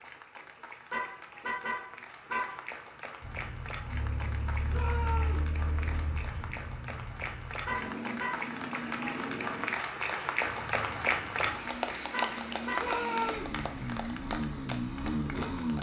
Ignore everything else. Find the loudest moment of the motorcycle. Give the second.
15 s.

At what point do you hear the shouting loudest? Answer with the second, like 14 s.
13 s.